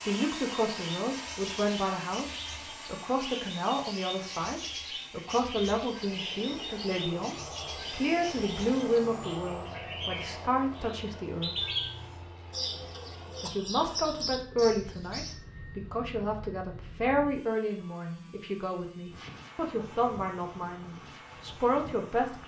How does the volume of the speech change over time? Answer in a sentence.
The loudness of the speech stays about the same.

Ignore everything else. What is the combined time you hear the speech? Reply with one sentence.
The speech can be heard for 21 seconds in total.